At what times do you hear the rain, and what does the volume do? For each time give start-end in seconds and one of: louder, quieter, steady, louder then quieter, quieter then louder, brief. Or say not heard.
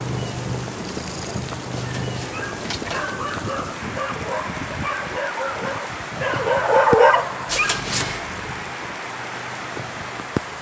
0.0-10.5 steady.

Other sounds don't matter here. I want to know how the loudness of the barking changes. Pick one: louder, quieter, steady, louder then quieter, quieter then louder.
louder.